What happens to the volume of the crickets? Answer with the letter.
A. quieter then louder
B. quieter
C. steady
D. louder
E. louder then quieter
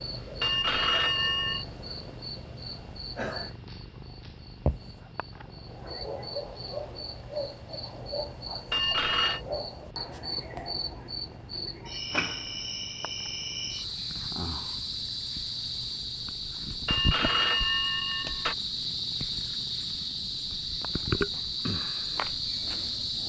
D.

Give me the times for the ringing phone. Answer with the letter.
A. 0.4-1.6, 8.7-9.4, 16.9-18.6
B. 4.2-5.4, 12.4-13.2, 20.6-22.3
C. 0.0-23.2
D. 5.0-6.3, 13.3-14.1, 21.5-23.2
A.